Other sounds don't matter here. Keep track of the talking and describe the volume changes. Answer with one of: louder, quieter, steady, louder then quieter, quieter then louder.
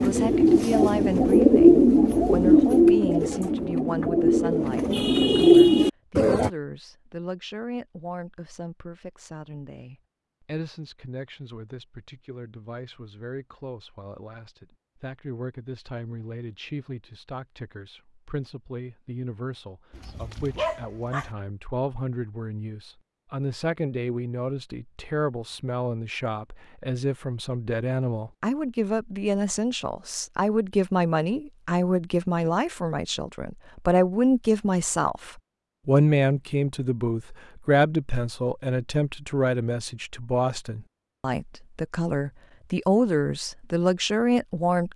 quieter then louder.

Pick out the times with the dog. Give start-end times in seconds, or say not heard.
19.9-21.3.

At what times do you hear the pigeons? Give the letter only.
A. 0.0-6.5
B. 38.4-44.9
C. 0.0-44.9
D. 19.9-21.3
A.